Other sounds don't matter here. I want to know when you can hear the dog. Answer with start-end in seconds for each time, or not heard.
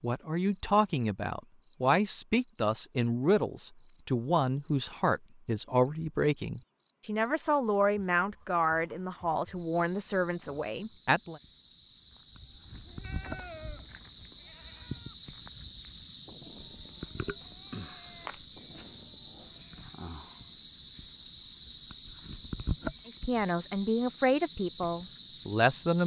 not heard.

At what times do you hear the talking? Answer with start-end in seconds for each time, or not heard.
0.0-11.4, 23.1-26.0.